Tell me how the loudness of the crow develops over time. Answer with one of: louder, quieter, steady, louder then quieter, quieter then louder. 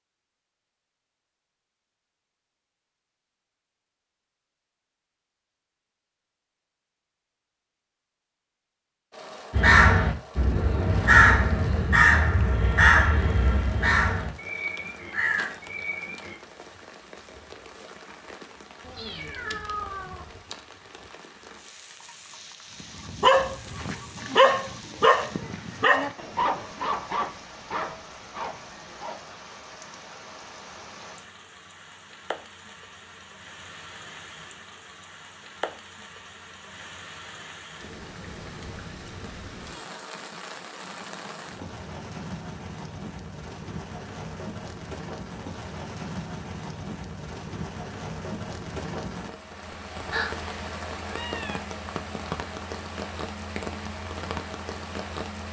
louder then quieter.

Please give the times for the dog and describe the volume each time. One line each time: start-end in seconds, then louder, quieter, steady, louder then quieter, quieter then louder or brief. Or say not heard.
23.1-29.2 quieter.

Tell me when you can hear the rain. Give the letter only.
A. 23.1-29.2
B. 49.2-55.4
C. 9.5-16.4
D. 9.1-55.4
D.